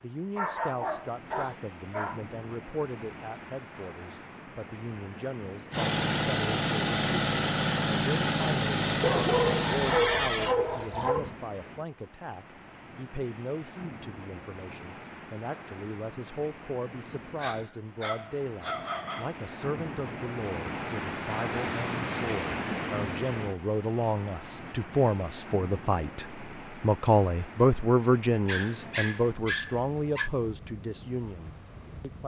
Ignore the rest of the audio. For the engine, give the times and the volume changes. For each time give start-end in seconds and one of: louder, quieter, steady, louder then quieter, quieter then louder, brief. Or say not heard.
5.7-10.6 steady.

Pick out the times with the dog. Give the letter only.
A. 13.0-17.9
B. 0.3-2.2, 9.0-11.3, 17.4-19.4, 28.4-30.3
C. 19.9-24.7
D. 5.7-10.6
B.